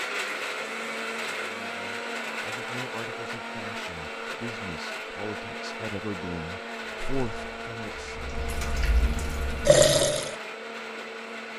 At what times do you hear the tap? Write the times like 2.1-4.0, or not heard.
6.8-10.3.